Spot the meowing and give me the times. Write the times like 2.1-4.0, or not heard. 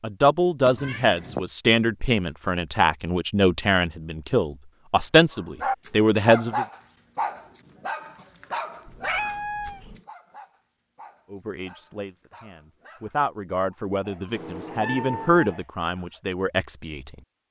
0.7-1.4, 8.8-9.9, 14.3-15.6.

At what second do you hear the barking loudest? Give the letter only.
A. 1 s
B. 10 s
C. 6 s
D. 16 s
C.